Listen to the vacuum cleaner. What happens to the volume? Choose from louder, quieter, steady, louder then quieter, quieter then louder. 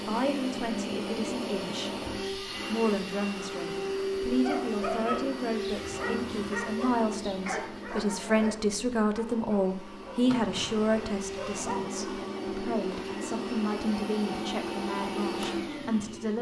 quieter then louder.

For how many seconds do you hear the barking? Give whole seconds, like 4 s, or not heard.
7 s.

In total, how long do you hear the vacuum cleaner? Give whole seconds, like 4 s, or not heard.
16 s.